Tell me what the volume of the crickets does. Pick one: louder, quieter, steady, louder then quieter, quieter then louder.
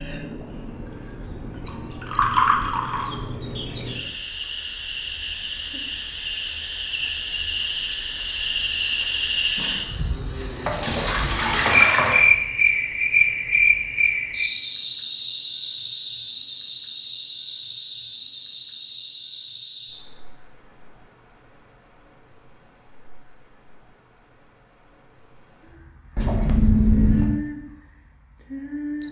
louder then quieter.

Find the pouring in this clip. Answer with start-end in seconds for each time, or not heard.
1.9-3.1, 10.7-12.2, 26.1-27.3.